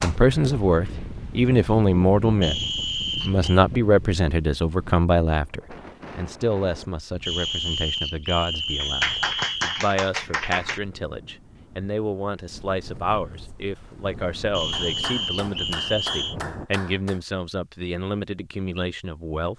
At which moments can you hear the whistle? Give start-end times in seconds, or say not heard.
2.4-3.6, 7.2-9.8, 14.5-16.4.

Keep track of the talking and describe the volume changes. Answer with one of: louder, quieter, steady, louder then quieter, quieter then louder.
quieter.